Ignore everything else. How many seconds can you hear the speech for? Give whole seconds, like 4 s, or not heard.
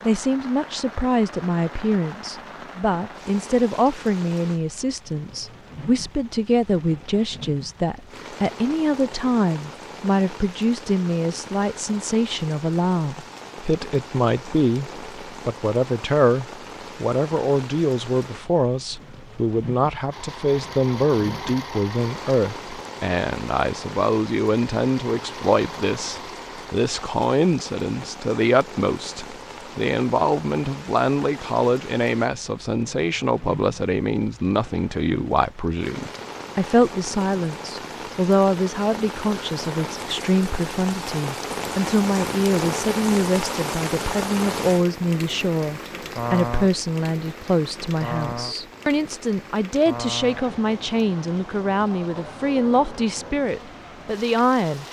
55 s.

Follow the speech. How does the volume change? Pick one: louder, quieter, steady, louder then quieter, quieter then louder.
steady.